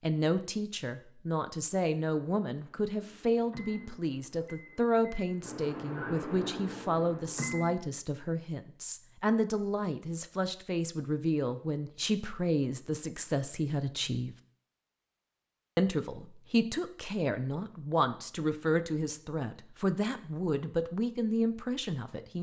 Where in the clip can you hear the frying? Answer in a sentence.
The frying can't be heard in this clip.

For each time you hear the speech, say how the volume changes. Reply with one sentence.
You can hear the speech from 0.0 to 14.3 s, at a steady volume; and from 15.8 to 22.3 s, at a steady volume.